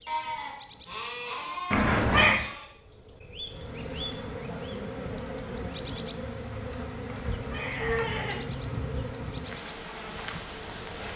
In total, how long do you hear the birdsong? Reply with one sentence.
The birdsong can be heard for 11 seconds in total.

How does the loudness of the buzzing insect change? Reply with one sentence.
The loudness of the buzzing insect stays about the same.